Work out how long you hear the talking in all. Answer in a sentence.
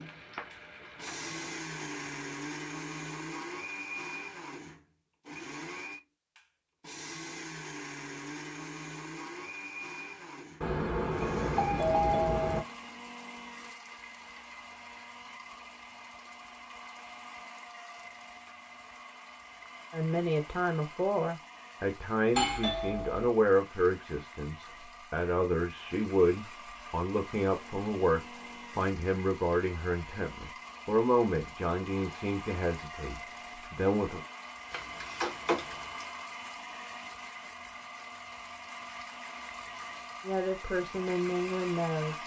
You can hear the talking for 16 seconds altogether.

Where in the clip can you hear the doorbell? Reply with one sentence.
You can hear the doorbell from 10.6 to 12.6 s, from 22.4 to 23.3 s and from 34.7 to 36.0 s.